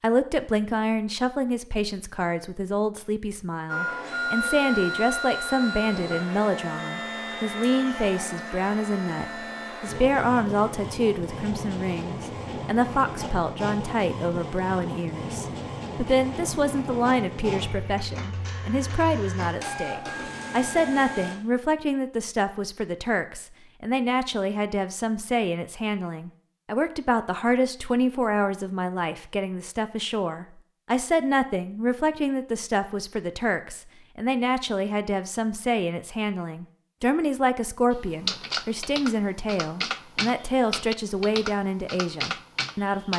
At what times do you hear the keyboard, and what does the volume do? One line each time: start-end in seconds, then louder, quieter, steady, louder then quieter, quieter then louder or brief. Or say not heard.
37.9-43.1 steady.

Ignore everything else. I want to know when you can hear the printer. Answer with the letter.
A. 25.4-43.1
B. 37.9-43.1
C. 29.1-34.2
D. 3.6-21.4
D.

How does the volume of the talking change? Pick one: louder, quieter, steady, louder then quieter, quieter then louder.
steady.